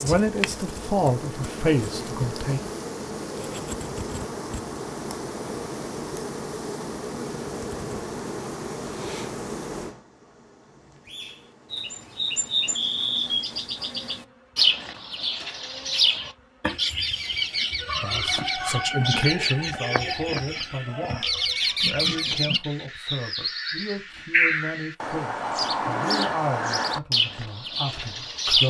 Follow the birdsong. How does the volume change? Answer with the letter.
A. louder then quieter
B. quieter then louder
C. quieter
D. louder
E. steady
E.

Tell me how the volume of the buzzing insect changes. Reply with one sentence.
The loudness of the buzzing insect goes down.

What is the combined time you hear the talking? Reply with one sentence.
The talking can be heard for 13 seconds in total.